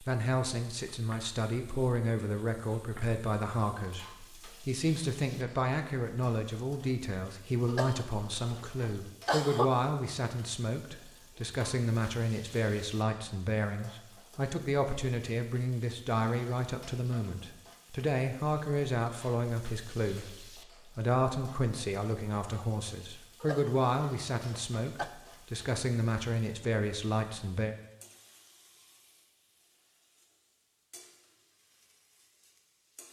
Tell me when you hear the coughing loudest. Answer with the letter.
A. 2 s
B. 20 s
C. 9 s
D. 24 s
C.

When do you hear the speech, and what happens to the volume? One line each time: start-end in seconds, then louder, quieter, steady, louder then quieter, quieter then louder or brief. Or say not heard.
0.0-27.8 steady.